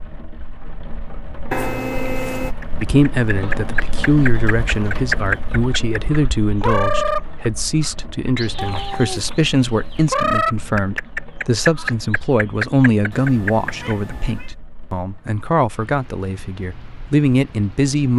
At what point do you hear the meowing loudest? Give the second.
2 s.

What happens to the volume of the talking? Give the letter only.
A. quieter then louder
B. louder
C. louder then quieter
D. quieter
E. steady
E.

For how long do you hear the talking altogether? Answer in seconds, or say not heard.
15 s.